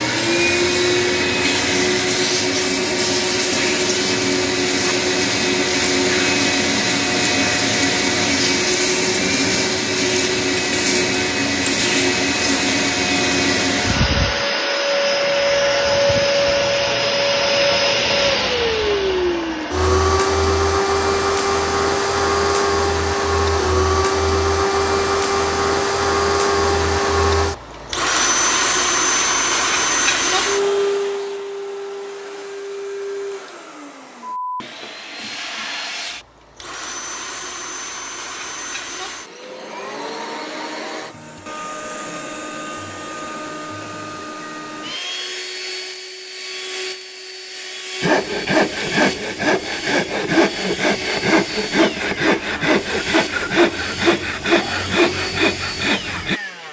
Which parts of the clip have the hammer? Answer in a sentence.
The hammer can't be heard in this clip.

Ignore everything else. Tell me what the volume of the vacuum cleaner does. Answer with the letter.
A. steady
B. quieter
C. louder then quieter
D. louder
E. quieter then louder
B.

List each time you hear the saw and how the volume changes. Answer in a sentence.
The saw can be heard from 48.0 to 56.4 s, at a steady volume.